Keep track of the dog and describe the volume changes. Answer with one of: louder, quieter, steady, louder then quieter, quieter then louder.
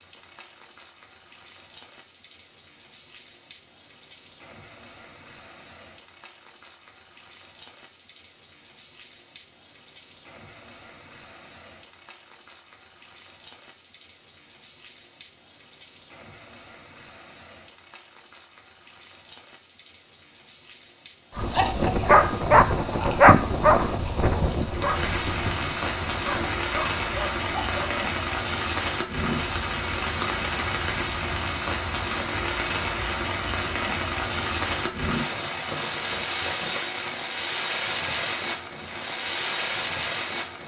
quieter.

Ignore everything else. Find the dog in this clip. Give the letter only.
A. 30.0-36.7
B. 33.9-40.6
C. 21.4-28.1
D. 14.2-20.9
C.